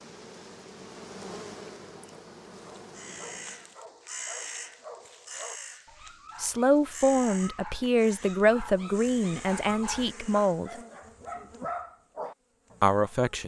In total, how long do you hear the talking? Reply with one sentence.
The talking can be heard for 5 seconds in total.